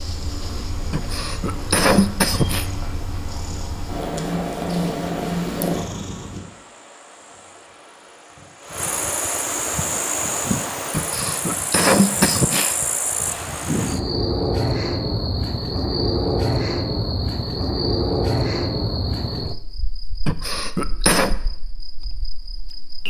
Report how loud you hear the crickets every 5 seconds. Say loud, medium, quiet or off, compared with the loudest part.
quiet, medium, loud, loud, quiet.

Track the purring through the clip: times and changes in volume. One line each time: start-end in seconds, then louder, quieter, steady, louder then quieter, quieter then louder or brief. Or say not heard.
0.0-6.4 louder.